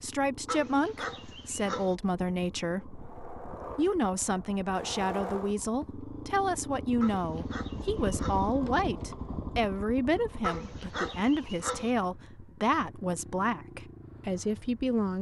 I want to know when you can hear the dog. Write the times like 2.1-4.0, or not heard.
0.5-1.9, 7.0-8.5, 10.4-11.9.